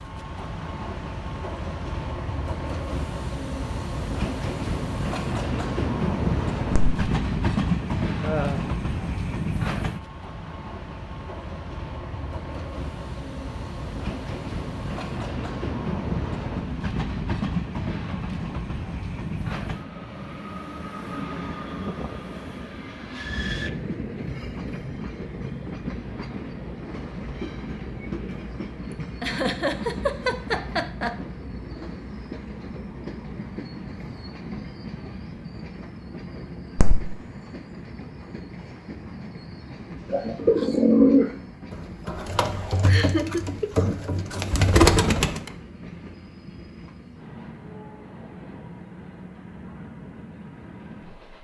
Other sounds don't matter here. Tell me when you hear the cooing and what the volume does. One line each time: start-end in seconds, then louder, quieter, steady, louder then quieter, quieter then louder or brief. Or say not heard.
40.1-45.5 quieter then louder.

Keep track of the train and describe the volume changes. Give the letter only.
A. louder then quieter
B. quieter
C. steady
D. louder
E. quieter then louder
B.